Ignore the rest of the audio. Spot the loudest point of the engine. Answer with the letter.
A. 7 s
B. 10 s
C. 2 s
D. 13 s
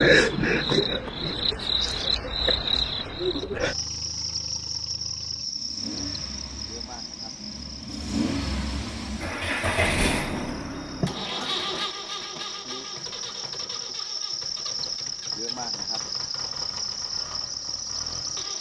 B.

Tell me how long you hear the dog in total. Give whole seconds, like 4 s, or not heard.
not heard.